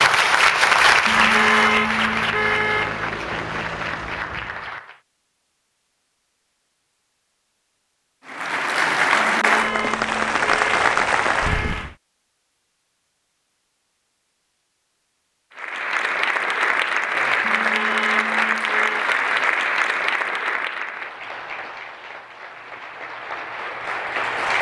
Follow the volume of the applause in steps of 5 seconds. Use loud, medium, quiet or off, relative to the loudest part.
loud, loud, loud, loud, medium.